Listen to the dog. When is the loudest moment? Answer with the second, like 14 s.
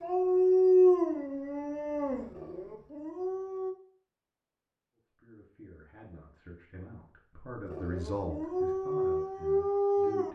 1 s.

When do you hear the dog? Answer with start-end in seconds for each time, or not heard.
0.0-3.8, 7.7-10.2.